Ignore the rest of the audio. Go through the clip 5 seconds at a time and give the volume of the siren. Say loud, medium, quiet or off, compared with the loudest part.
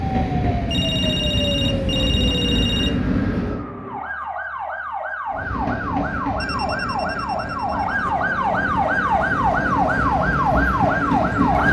medium, loud, loud.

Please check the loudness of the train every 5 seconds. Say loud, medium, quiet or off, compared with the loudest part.
loud, medium, loud.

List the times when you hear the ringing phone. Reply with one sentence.
You can hear the ringing phone from 0.7 to 3.0 s and from 6.4 to 7.9 s.